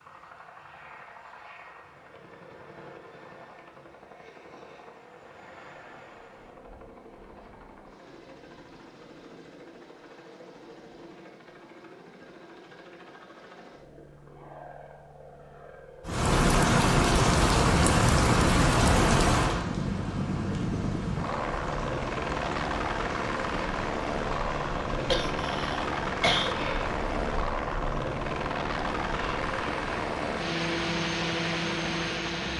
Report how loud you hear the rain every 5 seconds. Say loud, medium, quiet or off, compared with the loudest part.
off, off, off, loud, quiet, quiet, quiet.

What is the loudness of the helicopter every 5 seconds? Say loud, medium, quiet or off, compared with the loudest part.
quiet, quiet, quiet, medium, loud, loud, loud.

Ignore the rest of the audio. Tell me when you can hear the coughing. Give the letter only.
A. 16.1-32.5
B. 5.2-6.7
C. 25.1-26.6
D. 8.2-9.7
C.